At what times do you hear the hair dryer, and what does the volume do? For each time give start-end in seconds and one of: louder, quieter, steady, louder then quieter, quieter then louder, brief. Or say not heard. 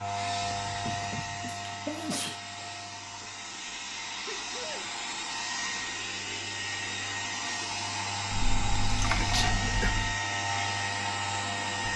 0.0-11.9 louder.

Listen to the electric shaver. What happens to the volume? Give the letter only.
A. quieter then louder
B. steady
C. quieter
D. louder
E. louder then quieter
A.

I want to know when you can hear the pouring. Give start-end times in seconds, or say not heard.
8.3-10.2.